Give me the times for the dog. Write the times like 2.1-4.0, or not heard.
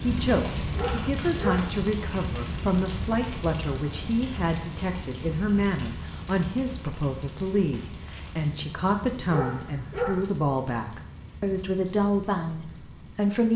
0.8-1.8, 9.2-10.2.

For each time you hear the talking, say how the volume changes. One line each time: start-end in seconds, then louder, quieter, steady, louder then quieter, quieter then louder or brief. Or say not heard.
0.0-13.5 steady.